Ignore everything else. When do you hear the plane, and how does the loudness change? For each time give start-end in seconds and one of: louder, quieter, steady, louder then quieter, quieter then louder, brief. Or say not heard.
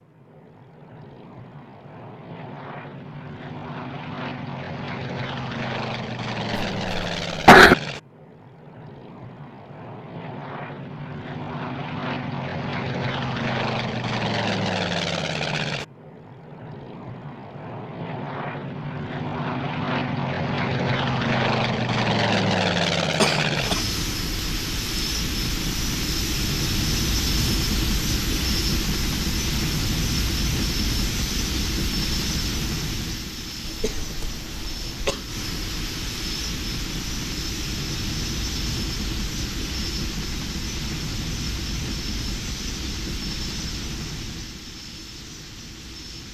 0.0-46.3 louder then quieter.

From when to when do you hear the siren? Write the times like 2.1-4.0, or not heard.
not heard.